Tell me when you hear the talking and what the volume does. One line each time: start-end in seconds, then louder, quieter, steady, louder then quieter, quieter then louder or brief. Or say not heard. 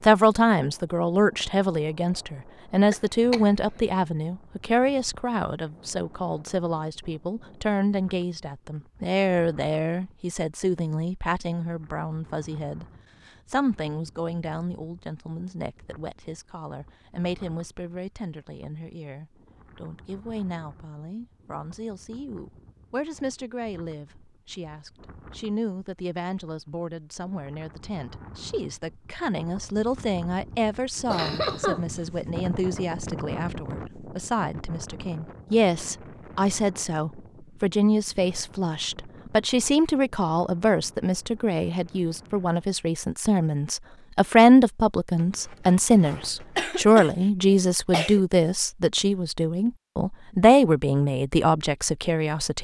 0.0-52.5 quieter then louder.